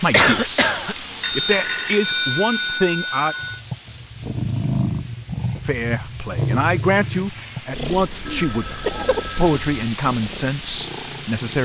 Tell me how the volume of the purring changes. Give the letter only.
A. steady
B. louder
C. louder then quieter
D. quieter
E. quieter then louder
D.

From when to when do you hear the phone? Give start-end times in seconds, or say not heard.
1.2-3.6, 8.2-9.9.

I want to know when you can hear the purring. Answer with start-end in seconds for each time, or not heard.
3.4-11.6.